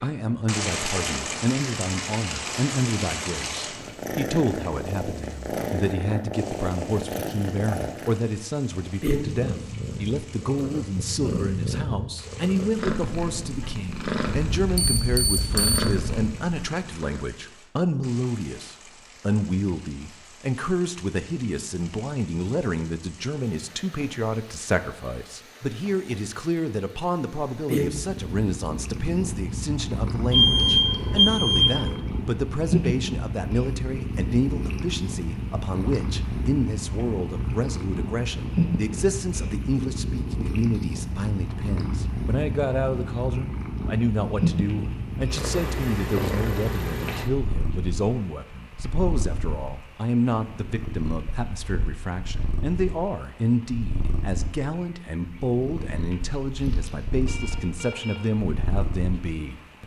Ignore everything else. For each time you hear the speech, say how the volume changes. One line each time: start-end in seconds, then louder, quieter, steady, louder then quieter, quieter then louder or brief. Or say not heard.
0.0-59.8 steady.